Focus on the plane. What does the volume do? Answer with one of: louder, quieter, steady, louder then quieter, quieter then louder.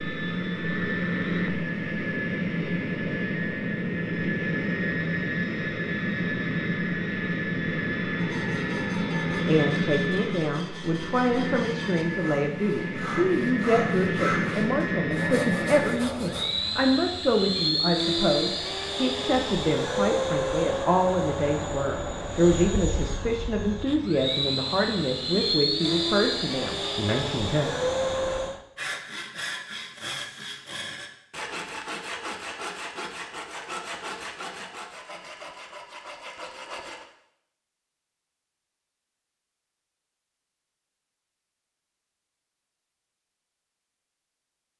steady.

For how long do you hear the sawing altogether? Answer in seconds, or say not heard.
17 s.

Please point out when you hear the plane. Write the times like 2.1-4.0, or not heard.
0.0-28.6.